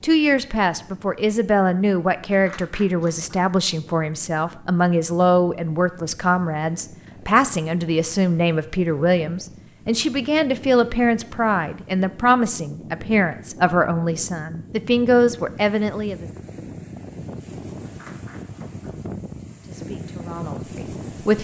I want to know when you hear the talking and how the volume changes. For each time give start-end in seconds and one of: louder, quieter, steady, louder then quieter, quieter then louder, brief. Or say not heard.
0.0-16.2 steady
19.6-21.3 brief.